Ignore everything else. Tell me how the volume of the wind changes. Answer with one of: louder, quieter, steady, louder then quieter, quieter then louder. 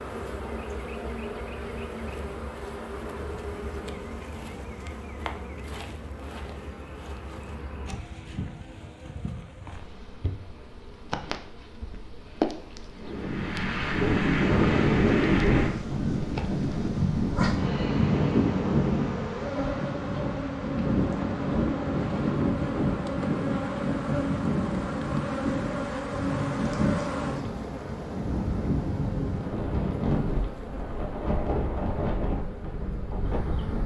quieter.